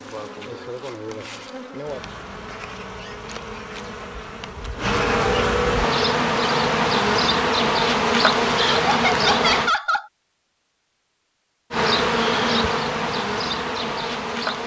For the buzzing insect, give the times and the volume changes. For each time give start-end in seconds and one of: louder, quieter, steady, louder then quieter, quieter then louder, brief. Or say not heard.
0.0-9.7 louder
11.7-14.6 brief.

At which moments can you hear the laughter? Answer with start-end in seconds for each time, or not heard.
8.6-10.1.